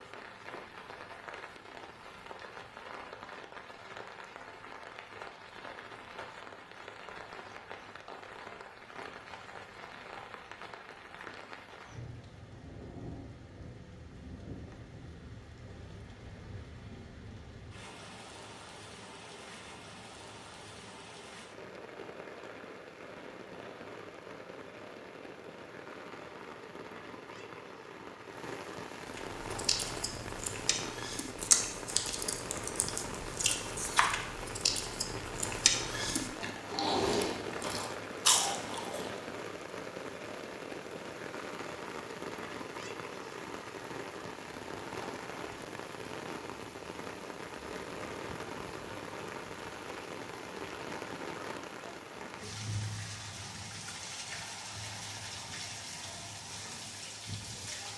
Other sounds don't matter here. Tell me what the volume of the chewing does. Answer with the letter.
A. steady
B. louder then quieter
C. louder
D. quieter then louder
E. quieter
C.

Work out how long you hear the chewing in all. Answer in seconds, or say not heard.
10 s.